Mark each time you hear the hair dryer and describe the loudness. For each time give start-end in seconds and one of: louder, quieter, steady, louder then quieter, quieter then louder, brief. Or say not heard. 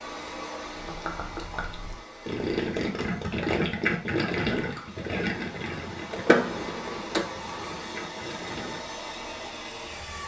0.0-10.2 quieter then louder.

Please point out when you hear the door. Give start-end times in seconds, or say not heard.
6.1-7.2.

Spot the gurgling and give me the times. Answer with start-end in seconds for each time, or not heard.
0.8-8.8.